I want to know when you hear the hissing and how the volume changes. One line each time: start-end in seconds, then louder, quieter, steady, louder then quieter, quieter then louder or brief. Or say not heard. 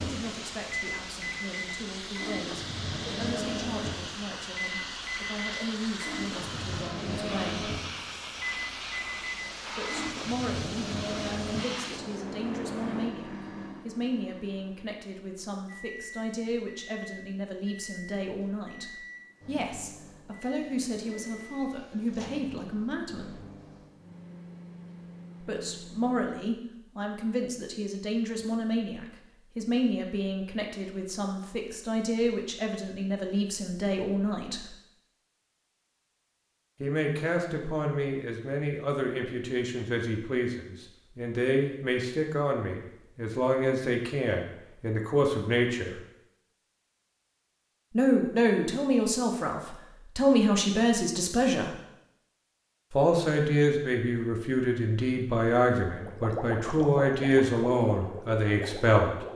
0.0-13.2 steady.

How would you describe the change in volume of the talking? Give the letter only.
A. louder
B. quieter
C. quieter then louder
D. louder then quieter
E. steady
A.